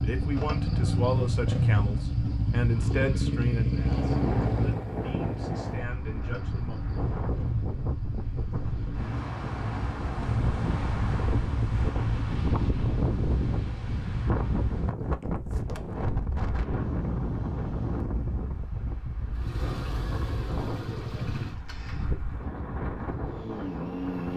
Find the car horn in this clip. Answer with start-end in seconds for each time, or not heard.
not heard.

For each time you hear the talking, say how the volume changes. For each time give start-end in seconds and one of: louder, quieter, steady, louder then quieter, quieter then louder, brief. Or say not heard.
0.0-6.8 quieter.